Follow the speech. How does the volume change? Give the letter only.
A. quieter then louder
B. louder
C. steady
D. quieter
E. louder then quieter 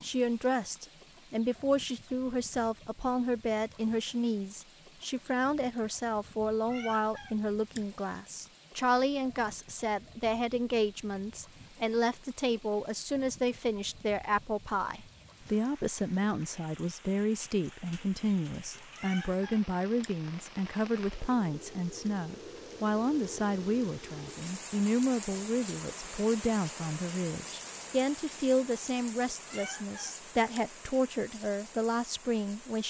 C.